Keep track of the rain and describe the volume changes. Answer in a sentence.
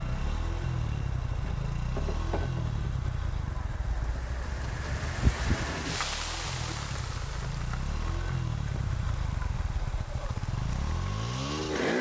The volume of the rain goes up, then down.